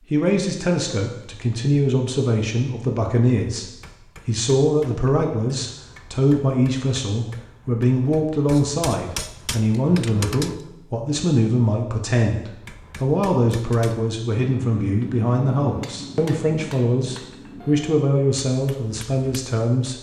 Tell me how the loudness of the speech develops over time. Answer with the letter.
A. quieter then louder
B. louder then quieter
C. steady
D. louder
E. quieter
C.